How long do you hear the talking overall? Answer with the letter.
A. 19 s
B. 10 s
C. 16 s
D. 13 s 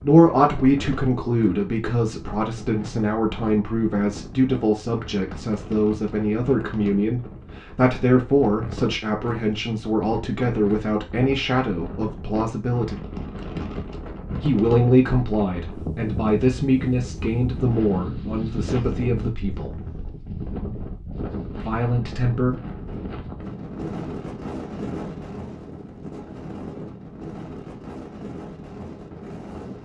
A.